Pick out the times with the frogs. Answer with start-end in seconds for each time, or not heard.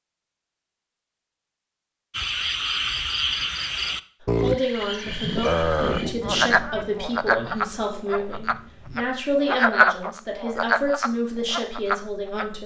2.1-12.4.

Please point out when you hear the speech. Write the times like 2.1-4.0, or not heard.
4.3-12.6.